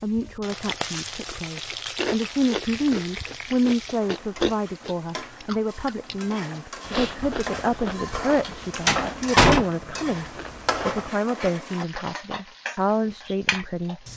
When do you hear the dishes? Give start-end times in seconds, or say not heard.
not heard.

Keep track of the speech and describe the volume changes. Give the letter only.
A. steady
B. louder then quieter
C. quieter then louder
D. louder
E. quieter
A.